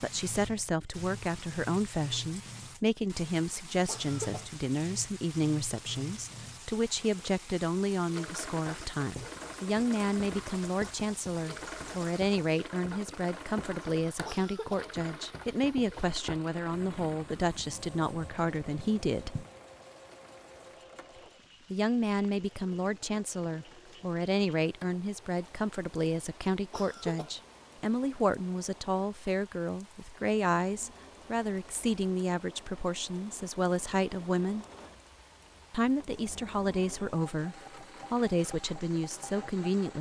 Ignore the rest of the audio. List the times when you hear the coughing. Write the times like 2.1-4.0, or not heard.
3.9-4.5, 14.2-14.8, 26.7-27.4.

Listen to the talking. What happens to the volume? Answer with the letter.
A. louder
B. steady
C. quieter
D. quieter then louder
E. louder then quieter
B.